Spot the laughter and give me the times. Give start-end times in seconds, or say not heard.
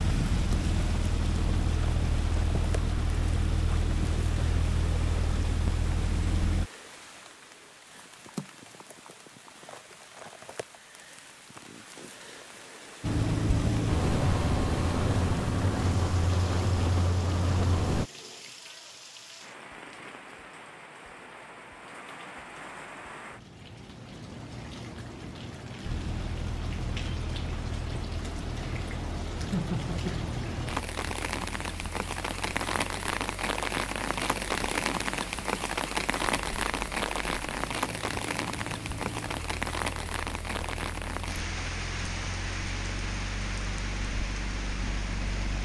29.5-30.3.